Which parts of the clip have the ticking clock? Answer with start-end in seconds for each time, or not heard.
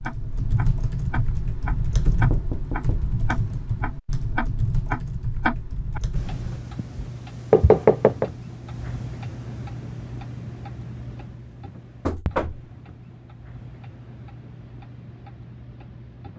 0.0-16.3.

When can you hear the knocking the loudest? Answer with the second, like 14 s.
8 s.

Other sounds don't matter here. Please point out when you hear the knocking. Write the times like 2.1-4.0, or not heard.
2.0-3.1, 7.5-8.3, 12.1-12.6.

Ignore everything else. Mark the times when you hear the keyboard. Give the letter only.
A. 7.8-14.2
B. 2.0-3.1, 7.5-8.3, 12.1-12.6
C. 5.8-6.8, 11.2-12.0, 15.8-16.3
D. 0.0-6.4
D.